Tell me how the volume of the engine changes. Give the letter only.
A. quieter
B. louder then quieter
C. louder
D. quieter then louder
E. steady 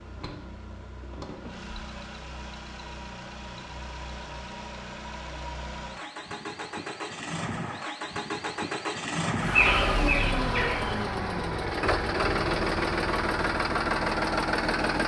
C.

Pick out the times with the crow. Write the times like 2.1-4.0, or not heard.
9.4-11.1.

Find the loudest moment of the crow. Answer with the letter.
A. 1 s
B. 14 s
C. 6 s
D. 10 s
D.